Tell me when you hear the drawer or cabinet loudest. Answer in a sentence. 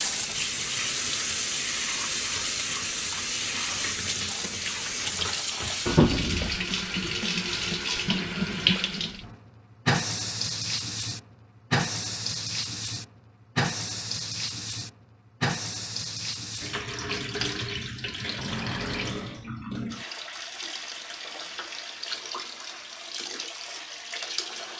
The volume of the drawer or cabinet peaks at 19 seconds.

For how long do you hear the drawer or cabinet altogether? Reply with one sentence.
You can hear the drawer or cabinet for 2 seconds altogether.